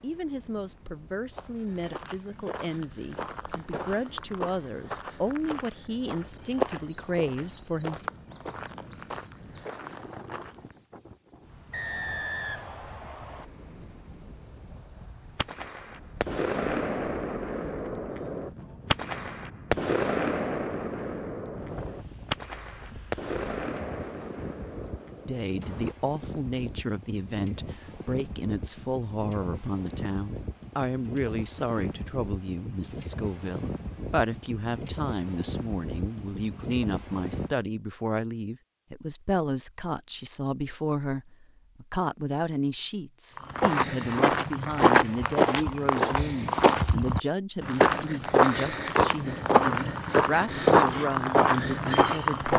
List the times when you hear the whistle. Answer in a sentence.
The whistle can be heard from 11.7 to 13.4 s.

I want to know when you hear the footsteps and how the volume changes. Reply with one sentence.
The footsteps can be heard from 1.3 to 10.8 s, getting louder then quieter; and from 43.4 to 52.5 s, at a steady volume.